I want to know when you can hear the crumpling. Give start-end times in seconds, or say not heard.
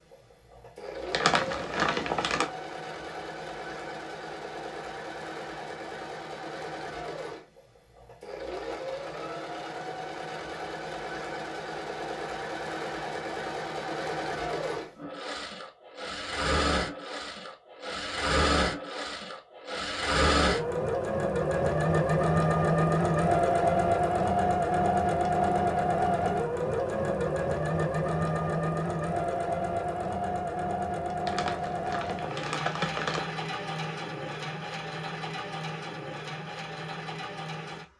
1.1-2.5, 31.2-33.2.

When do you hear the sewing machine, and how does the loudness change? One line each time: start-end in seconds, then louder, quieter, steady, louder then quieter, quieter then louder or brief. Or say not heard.
0.0-37.9 louder then quieter.